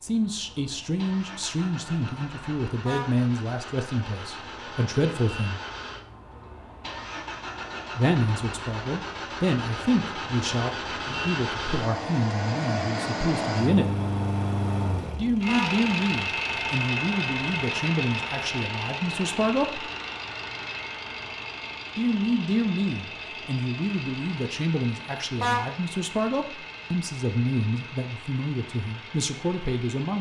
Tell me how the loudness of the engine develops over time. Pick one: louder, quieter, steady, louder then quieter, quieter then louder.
louder then quieter.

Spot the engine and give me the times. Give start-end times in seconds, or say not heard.
0.0-30.1.